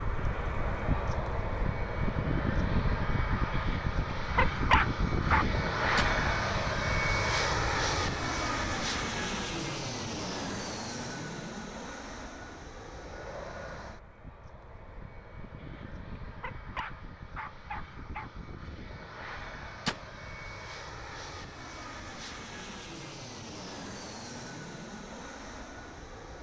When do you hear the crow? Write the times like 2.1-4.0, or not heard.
not heard.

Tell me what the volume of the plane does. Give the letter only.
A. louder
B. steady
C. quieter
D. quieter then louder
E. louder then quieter
C.